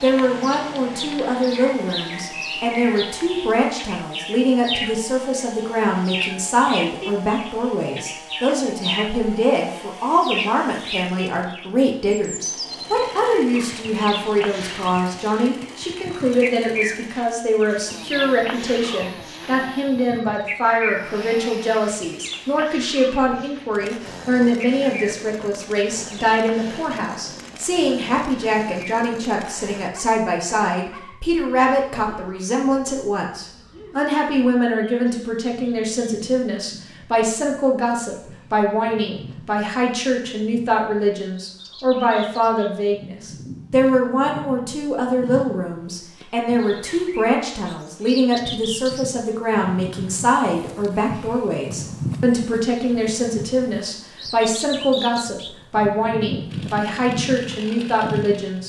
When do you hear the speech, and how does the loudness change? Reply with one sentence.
The speech can be heard from 0.0 to 58.6 s, at a steady volume.